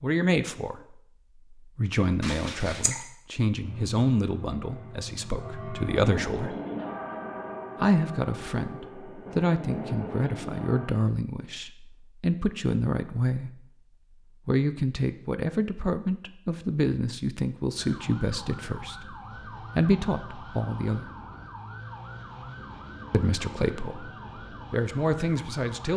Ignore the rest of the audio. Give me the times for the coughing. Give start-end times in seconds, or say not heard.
2.2-3.0.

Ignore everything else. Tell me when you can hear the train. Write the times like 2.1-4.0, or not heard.
3.6-10.9.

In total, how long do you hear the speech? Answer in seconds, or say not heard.
22 s.